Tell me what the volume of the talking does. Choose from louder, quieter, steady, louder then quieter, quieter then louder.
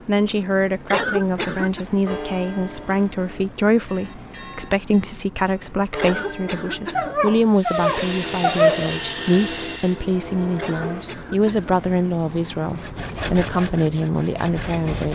steady.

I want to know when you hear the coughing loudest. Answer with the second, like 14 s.
1 s.